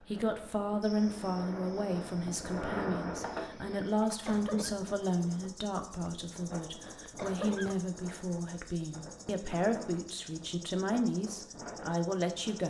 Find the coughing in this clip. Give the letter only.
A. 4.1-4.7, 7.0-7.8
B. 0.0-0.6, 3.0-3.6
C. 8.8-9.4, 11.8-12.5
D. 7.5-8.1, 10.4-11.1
A.